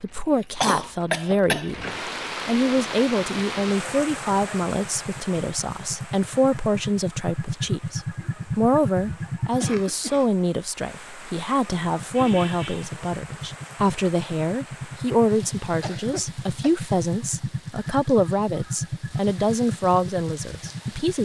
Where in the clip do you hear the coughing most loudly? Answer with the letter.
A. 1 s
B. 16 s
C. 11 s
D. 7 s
A.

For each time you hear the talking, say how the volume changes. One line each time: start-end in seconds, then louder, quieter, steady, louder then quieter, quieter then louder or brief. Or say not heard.
0.0-21.2 steady.